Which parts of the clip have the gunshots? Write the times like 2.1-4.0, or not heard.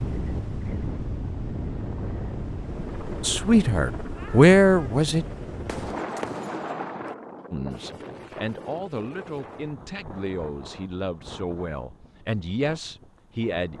5.7-7.2.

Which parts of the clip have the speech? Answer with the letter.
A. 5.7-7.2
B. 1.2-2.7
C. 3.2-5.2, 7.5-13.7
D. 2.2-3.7
C.